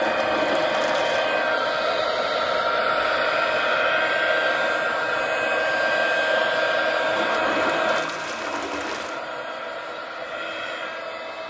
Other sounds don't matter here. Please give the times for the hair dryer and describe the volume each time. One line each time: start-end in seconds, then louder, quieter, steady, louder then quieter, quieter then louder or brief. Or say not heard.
0.0-11.4 quieter.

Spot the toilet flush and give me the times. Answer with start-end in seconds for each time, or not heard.
0.0-1.3, 7.2-9.2.